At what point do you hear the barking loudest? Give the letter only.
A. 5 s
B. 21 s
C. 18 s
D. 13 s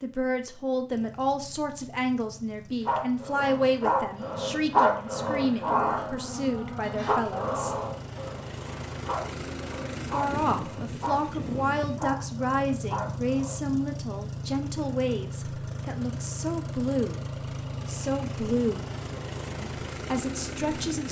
A.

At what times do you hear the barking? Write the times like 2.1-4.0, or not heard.
2.9-13.6.